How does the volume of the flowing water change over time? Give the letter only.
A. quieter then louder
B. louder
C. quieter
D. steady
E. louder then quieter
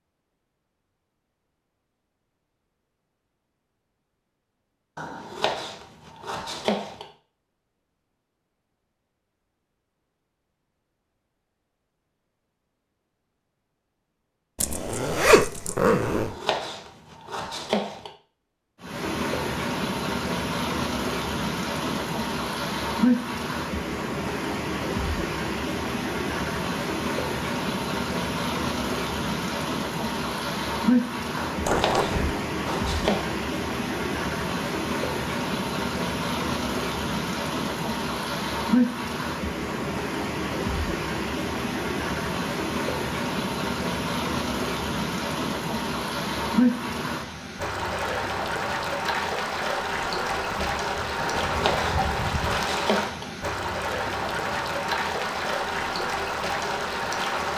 D.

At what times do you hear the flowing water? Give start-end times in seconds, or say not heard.
18.8-57.5.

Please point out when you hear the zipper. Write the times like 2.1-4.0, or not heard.
14.6-16.4, 31.6-32.4, 50.0-52.6.